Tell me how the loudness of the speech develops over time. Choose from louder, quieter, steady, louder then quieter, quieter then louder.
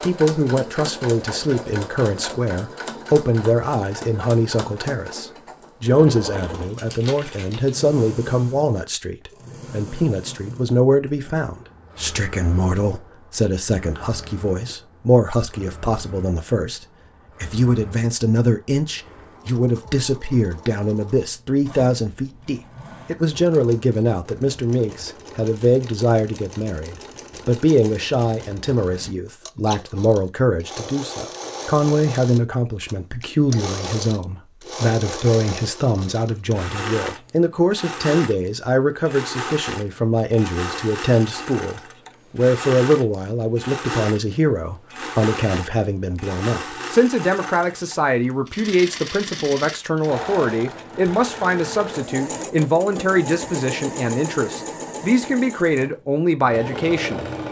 steady.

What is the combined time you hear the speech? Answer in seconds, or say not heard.
57 s.